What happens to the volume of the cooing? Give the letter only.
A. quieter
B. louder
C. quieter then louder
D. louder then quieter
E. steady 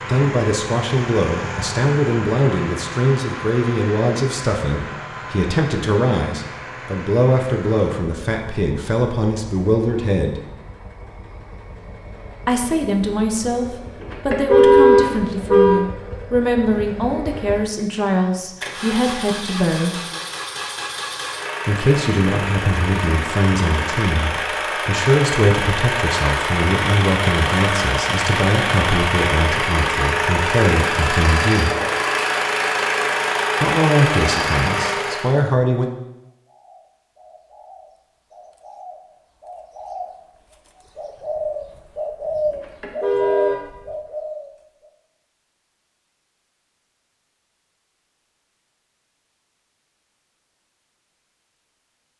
B.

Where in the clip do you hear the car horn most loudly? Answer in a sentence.
The volume of the car horn peaks at 15 seconds.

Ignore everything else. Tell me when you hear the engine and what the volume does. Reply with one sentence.
The engine can be heard from 0.0 to 35.4 s, getting quieter then louder.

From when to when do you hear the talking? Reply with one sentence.
The talking can be heard from 0.1 to 10.4 s, from 12.4 to 20.0 s, from 21.6 to 31.8 s and from 33.6 to 35.9 s.